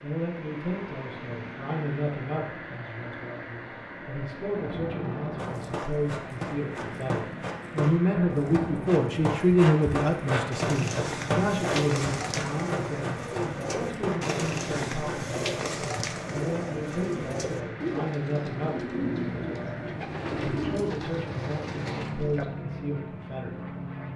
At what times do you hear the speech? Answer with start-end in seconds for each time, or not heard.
0.0-23.6.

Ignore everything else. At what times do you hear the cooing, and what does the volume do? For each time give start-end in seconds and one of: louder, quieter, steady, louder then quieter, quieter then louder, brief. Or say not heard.
10.5-22.4 steady.